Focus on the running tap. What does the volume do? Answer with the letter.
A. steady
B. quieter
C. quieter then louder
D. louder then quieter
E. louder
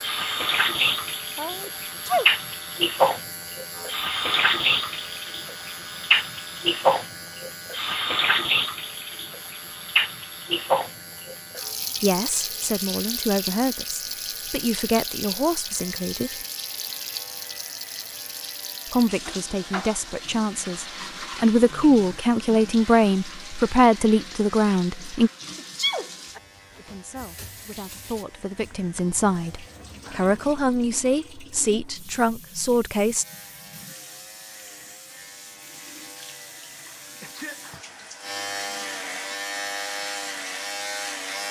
B.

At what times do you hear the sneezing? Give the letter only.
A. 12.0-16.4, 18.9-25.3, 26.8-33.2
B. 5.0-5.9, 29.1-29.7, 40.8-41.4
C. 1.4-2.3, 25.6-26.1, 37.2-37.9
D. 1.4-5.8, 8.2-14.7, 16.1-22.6
C.